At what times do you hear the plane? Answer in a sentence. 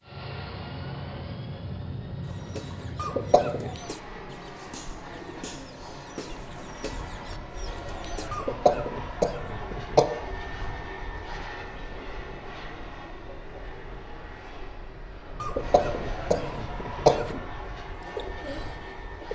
The plane can be heard from 0.1 to 19.3 s.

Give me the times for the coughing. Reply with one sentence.
The coughing can be heard from 3.0 to 3.7 s, from 8.3 to 10.1 s and from 15.4 to 17.4 s.